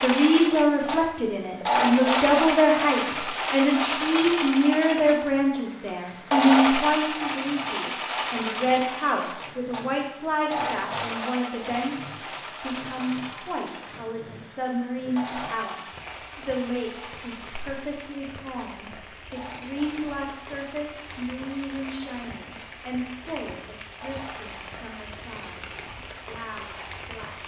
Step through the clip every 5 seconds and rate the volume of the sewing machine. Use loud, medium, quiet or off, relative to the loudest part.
loud, loud, medium, quiet, quiet, quiet.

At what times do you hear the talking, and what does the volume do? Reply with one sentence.
You can hear the talking from 0.0 to 27.4 s, getting quieter.